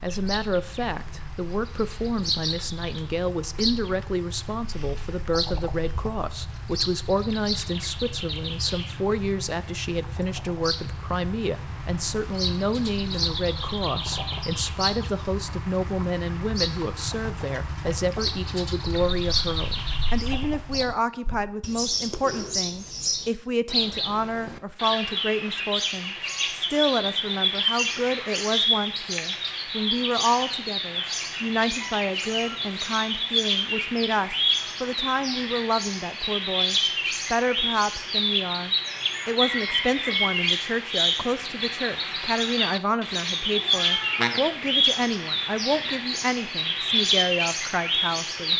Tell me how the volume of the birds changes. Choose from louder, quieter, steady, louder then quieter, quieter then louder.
louder.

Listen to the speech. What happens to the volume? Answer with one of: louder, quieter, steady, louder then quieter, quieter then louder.
steady.